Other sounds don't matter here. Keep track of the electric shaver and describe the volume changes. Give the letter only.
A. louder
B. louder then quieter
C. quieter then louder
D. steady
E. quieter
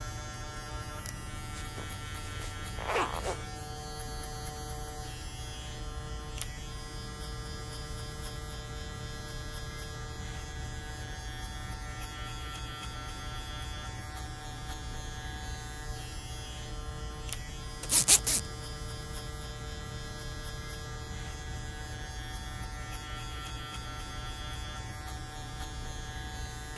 D.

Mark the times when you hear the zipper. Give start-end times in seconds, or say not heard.
1.6-3.5, 17.9-18.4.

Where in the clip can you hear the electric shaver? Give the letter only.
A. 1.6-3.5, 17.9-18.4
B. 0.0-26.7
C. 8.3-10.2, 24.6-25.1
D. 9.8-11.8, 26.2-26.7
B.